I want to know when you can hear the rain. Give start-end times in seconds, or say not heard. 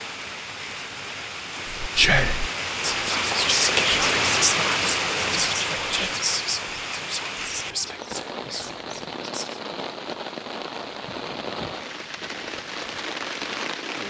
0.0-14.0.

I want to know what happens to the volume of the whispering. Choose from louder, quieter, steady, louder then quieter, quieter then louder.
quieter.